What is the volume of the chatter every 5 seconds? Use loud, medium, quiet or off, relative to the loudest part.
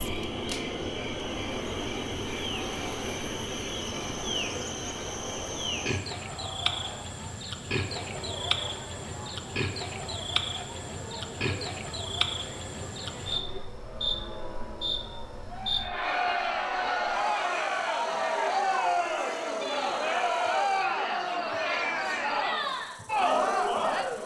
quiet, quiet, quiet, loud, loud.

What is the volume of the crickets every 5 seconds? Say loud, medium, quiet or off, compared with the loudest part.
loud, loud, loud, medium, quiet.